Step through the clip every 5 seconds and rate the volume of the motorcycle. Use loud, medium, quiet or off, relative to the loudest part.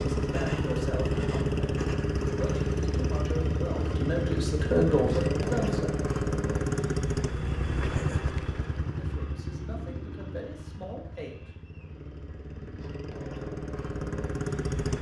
loud, loud, medium.